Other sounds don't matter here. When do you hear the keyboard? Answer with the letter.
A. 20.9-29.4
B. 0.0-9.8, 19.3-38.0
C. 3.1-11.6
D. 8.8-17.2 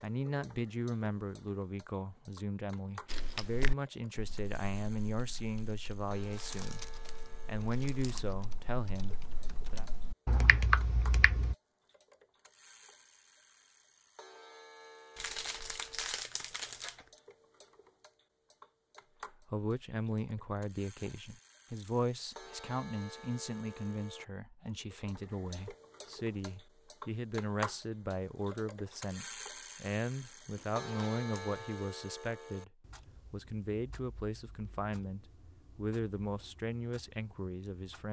C.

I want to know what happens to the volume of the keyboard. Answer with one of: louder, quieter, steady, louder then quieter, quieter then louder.
quieter then louder.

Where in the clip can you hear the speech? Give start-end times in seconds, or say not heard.
0.0-9.8, 19.3-38.0.